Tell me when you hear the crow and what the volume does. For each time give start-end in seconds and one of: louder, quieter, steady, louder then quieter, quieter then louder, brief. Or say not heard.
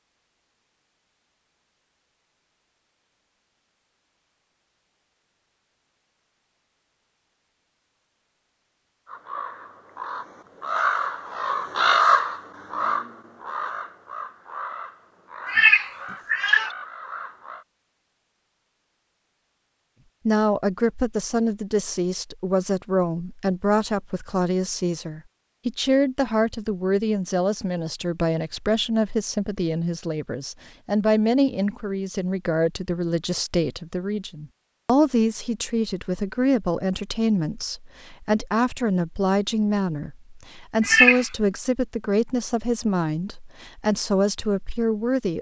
9.1-17.6 louder then quieter.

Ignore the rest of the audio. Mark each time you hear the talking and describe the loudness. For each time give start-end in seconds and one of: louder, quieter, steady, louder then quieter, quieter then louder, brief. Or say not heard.
20.2-45.3 steady.